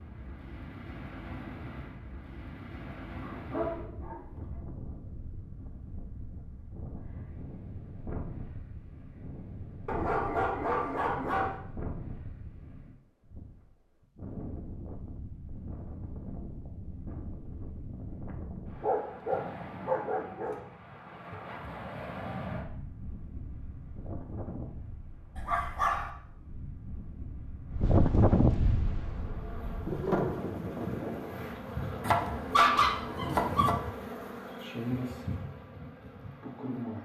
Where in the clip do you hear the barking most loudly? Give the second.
33 s.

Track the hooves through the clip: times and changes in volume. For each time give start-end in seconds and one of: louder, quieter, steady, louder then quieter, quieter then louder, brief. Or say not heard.
not heard.